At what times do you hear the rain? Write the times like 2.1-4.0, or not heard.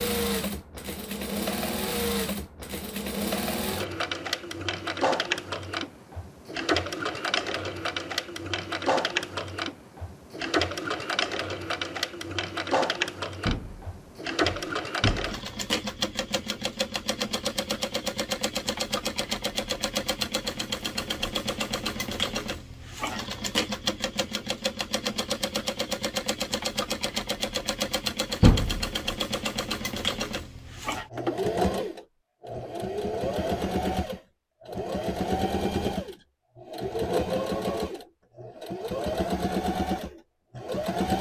not heard.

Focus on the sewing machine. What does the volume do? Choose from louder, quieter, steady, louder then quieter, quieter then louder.
steady.